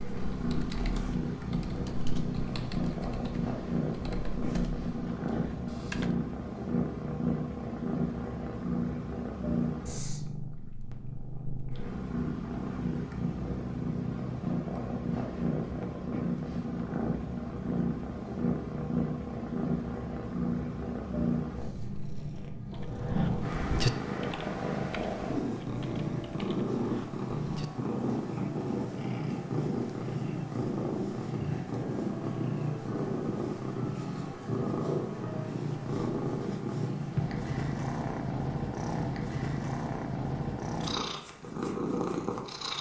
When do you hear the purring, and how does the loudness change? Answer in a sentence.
You can hear the purring from 0.0 to 42.7 s, at a steady volume.